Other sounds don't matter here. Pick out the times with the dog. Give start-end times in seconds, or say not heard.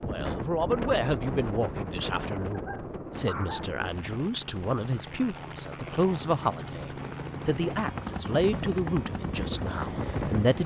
2.5-3.7.